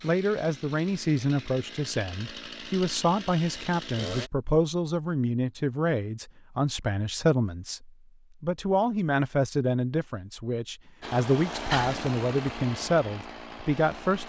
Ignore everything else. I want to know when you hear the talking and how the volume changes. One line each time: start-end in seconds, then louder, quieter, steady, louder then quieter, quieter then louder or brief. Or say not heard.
0.0-14.2 steady.